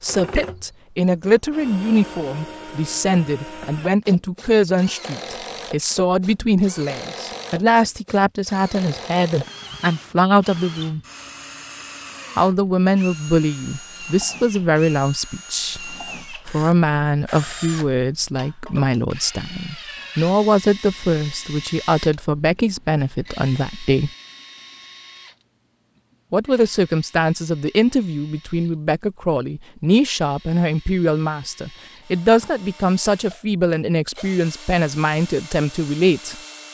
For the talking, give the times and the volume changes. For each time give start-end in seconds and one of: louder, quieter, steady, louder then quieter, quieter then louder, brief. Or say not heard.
0.0-11.0 steady
12.3-24.1 steady
26.3-36.4 steady.